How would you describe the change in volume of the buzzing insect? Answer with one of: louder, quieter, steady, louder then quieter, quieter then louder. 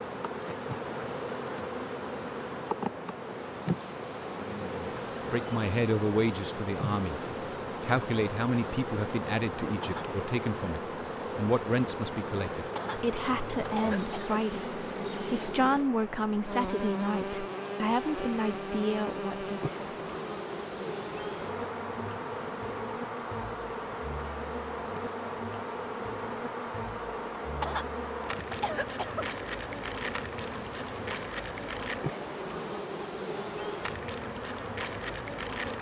steady.